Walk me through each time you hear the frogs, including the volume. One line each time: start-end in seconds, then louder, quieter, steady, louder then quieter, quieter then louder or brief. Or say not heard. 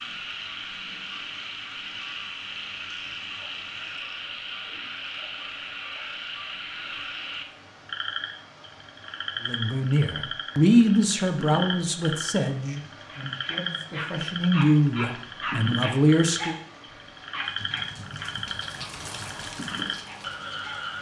0.0-20.9 steady.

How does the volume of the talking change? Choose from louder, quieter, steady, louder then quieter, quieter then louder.
quieter then louder.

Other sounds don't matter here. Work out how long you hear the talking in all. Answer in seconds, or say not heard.
7 s.